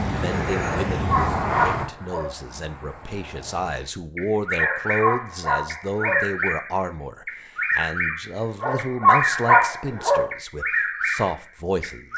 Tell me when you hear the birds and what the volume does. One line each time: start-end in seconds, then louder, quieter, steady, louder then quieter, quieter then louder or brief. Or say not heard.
4.2-12.1 steady.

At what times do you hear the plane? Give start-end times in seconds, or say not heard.
0.0-4.0.